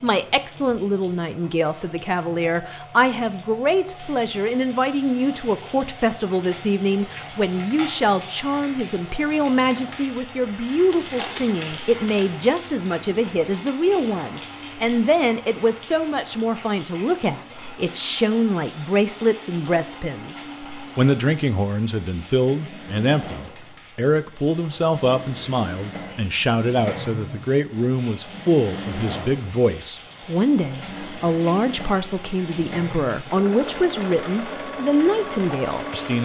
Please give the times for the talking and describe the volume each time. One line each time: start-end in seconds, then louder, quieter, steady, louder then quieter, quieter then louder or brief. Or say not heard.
0.0-36.1 steady.